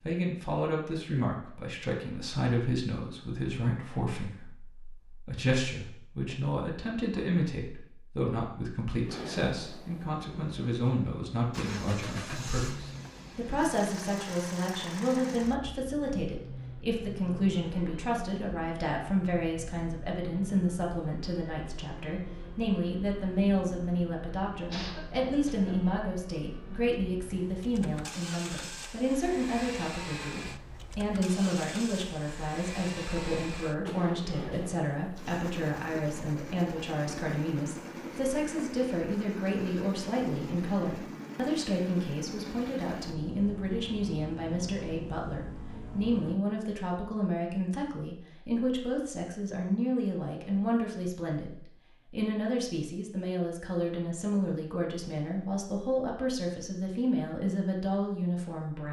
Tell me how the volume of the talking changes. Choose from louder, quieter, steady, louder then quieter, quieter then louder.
steady.